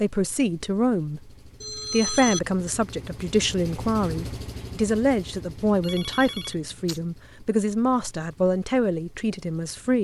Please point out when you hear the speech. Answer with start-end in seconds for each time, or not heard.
0.0-10.0.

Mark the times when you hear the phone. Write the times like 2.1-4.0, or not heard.
1.6-2.4, 5.8-7.0.